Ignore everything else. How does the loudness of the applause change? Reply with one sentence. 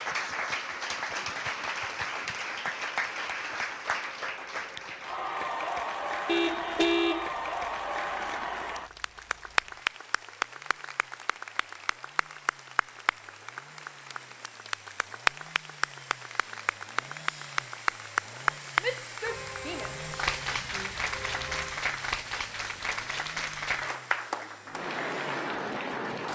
The volume of the applause stays about the same.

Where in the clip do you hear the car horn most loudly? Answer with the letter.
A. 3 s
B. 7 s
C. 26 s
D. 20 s
B.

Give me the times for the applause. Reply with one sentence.
You can hear the applause from 0.0 to 26.3 s.